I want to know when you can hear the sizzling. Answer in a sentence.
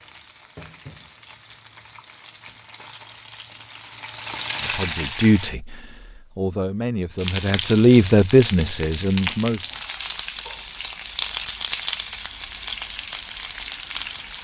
You can hear the sizzling from 0.0 to 5.5 s and from 7.2 to 14.3 s.